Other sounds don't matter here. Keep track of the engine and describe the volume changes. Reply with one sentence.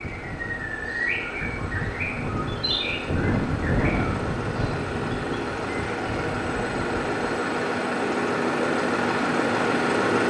The loudness of the engine goes up.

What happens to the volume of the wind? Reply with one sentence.
The loudness of the wind goes up, then down.